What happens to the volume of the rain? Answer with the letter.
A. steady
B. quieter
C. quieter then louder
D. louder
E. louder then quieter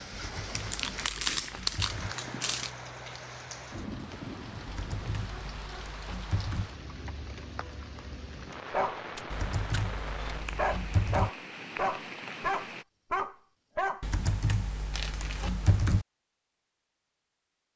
A.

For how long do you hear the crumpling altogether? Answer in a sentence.
The crumpling can be heard for 3 seconds in total.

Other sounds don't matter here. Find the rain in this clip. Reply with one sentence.
You can hear the rain from 0.0 to 12.8 s.